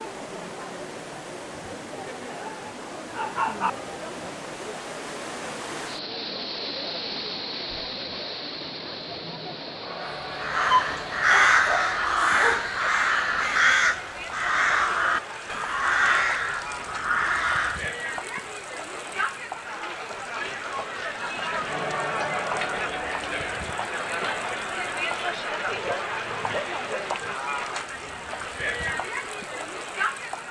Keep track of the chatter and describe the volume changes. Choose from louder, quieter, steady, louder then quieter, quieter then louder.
louder.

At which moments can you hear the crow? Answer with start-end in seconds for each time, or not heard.
10.0-17.9.